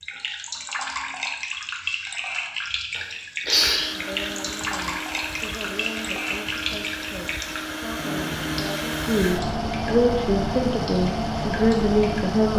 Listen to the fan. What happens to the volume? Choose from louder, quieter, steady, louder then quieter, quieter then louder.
louder.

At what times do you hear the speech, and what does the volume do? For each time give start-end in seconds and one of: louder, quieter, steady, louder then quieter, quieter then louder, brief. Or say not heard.
3.9-12.5 louder.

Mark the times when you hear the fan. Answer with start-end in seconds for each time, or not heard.
3.5-12.5.